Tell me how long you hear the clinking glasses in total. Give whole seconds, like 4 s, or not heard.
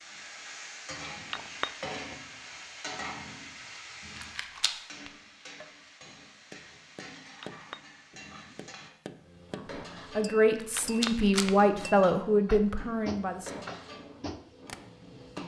3 s.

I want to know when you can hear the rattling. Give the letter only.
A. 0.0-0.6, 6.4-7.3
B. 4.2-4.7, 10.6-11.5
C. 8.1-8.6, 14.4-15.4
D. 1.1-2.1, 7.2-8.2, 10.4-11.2
B.